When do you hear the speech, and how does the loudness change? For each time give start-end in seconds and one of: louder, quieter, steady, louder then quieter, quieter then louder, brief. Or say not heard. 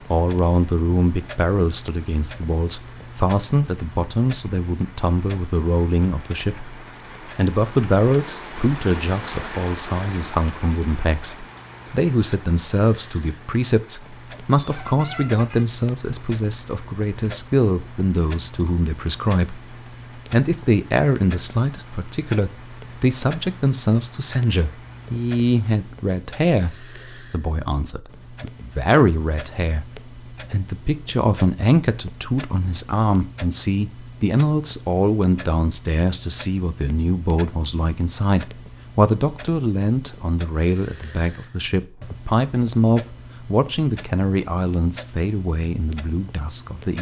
0.1-46.9 steady.